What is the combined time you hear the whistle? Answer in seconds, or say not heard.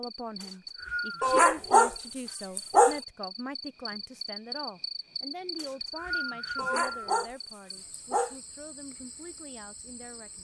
3 s.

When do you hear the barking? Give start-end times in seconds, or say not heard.
1.2-3.0, 6.5-8.3.